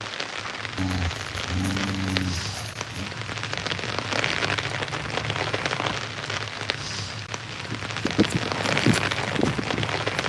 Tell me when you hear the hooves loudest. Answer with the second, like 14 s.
9 s.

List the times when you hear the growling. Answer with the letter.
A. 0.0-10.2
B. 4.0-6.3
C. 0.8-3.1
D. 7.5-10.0
C.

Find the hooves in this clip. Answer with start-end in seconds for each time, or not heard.
7.5-10.0.